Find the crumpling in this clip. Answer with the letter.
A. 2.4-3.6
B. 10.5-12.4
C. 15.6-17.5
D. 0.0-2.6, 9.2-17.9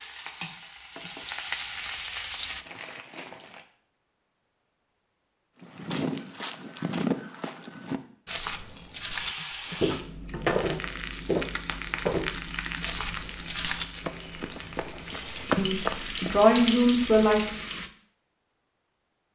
A.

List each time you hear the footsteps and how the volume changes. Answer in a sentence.
You can hear the footsteps from 5.6 to 16.4 s, at a steady volume.